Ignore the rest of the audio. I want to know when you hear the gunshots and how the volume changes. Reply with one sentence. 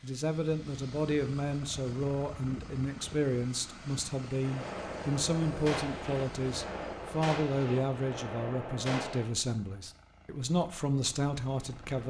You can hear the gunshots from 4.4 to 9.3 s, at a steady volume.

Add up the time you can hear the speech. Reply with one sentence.
The speech can be heard for 12 seconds in total.